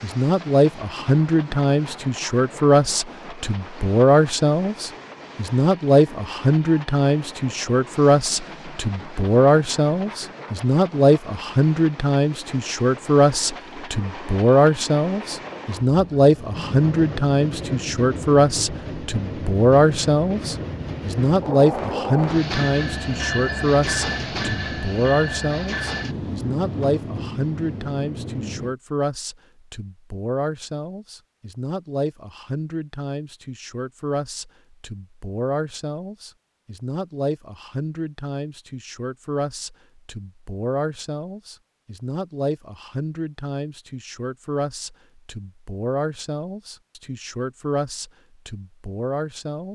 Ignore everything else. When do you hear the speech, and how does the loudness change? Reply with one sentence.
You can hear the speech from 0.0 to 49.6 s, getting quieter.